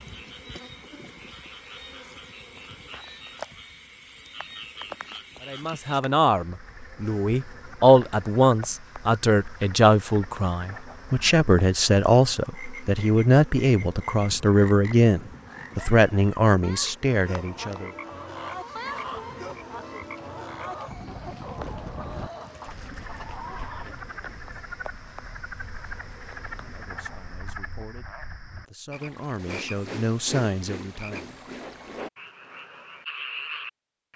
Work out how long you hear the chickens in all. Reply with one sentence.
You can hear the chickens for 6 seconds altogether.